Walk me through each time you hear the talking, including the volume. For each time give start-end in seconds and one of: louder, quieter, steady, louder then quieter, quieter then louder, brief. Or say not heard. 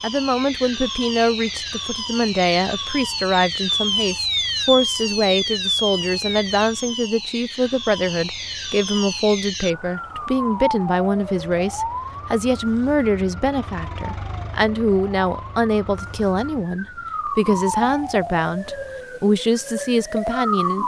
0.0-20.8 steady.